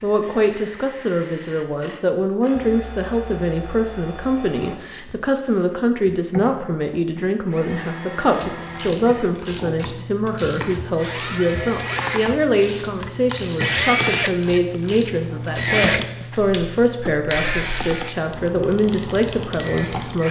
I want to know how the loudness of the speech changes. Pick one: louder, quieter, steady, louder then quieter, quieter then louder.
steady.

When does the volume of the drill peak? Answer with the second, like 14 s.
14 s.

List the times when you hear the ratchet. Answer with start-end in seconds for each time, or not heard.
8.3-20.2.